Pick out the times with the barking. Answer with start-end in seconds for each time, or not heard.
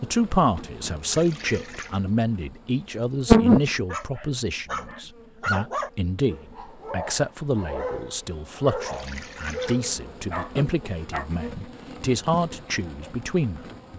3.9-11.2.